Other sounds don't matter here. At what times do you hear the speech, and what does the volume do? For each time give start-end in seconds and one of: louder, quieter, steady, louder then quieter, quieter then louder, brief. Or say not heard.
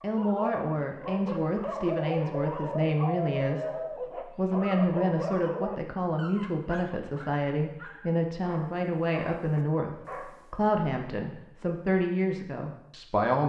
0.0-13.4 steady.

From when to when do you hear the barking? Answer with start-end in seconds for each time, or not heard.
0.0-10.6.